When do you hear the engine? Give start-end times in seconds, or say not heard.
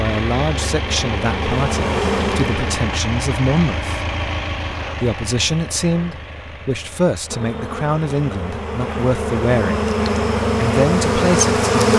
0.0-11.8.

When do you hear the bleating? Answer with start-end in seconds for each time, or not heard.
not heard.